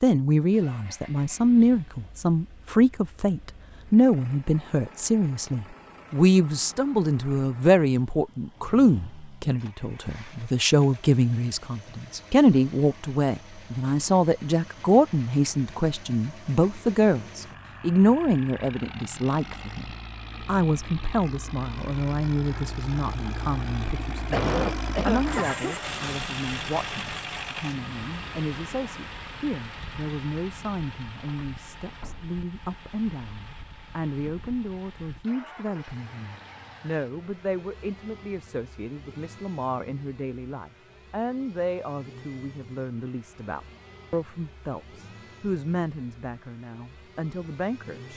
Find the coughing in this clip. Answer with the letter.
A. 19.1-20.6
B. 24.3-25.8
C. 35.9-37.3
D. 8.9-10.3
B.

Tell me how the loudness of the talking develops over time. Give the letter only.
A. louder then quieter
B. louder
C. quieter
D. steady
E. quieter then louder
C.